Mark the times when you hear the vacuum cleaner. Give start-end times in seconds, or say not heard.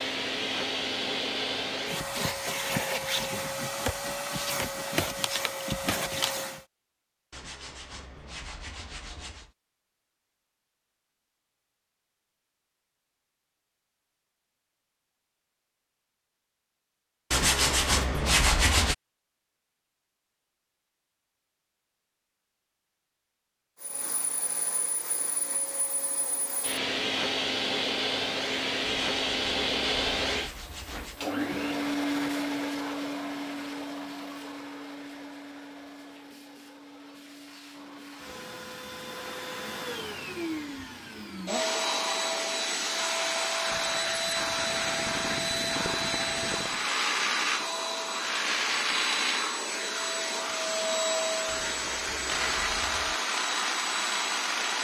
0.0-6.7, 23.8-54.7.